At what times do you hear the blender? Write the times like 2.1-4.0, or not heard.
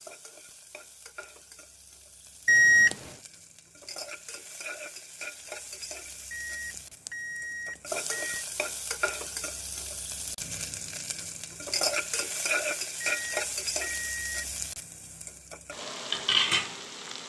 not heard.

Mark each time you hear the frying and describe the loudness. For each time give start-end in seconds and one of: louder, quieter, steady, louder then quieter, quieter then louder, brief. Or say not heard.
0.0-17.2 louder.